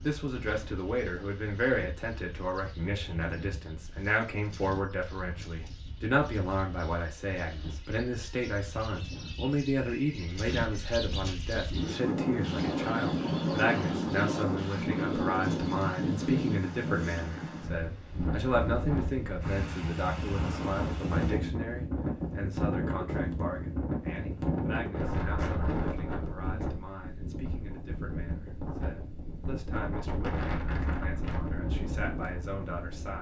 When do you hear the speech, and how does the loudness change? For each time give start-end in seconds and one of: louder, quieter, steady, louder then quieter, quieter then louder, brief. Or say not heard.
0.0-33.1 quieter.